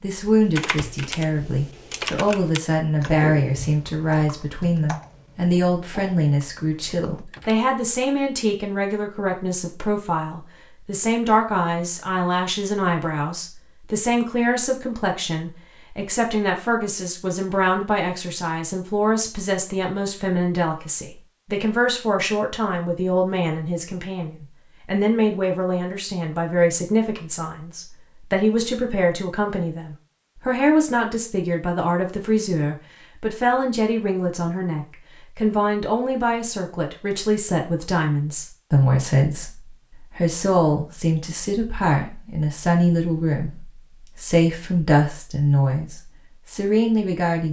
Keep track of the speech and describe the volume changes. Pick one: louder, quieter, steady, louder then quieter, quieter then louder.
steady.